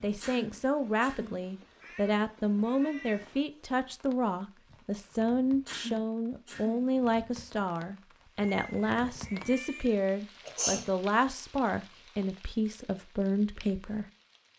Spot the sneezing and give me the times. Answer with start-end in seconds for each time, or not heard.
0.2-1.4, 5.7-6.9, 10.4-10.8.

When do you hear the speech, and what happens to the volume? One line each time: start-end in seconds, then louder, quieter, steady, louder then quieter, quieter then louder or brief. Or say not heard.
0.0-14.1 steady.